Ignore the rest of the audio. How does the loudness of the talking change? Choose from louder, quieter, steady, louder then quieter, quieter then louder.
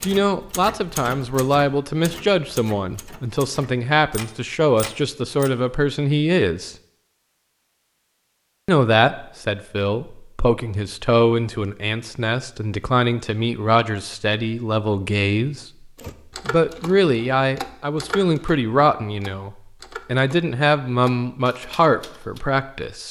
steady.